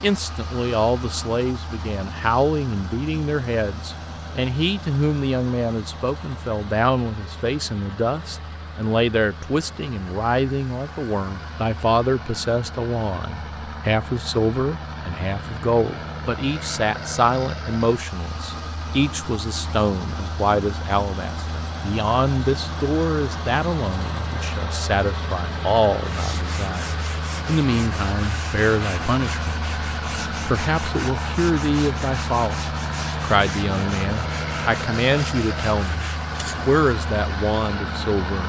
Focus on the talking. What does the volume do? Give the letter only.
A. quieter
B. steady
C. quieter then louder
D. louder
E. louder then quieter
B.